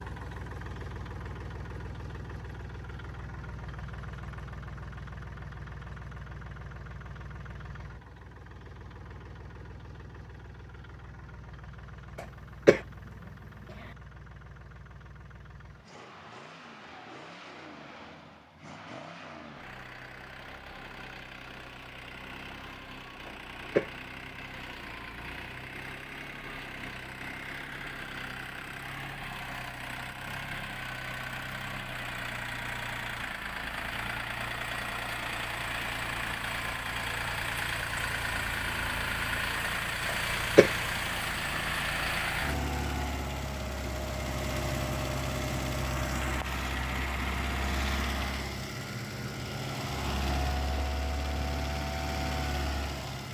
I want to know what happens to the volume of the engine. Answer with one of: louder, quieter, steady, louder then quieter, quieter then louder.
louder.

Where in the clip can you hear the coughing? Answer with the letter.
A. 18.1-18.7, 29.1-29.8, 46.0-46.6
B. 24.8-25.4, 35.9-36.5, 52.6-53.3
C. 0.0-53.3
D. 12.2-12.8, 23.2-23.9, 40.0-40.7
D.